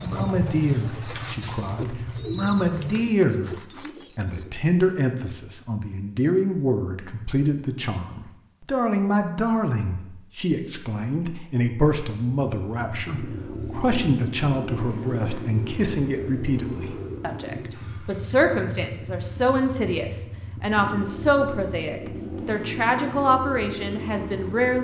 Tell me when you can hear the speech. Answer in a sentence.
The speech can be heard from 0.0 to 3.5 s and from 4.2 to 24.7 s.